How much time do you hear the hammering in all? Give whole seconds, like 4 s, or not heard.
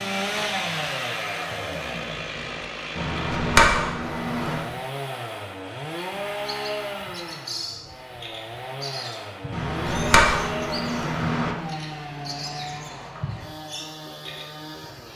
4 s.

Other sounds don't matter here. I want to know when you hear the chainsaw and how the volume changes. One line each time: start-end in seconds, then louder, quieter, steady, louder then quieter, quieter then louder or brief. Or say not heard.
0.0-15.1 quieter.